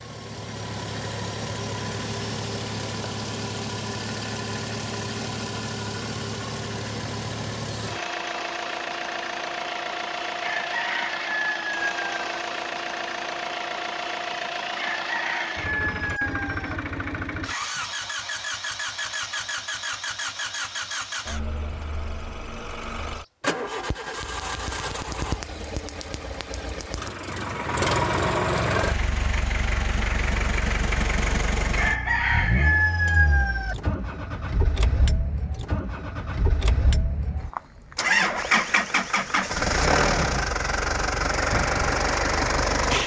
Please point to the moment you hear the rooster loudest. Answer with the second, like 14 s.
33 s.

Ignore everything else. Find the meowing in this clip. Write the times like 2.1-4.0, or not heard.
not heard.